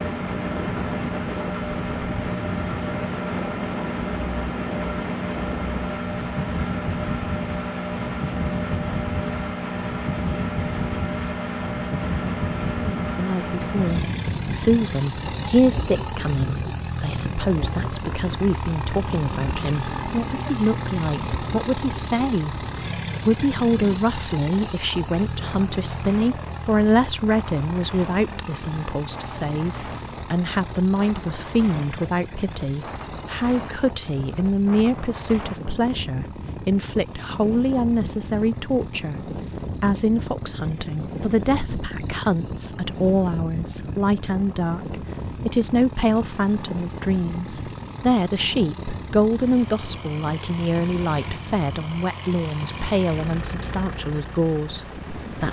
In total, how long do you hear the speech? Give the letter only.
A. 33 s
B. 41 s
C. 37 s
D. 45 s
B.